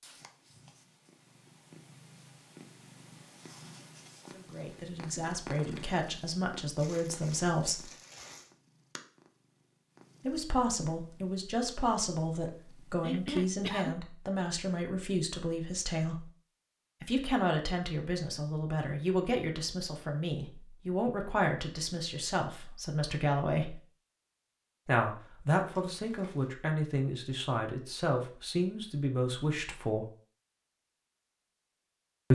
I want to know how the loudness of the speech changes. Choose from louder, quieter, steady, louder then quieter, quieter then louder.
steady.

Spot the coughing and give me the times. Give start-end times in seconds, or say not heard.
13.0-14.0.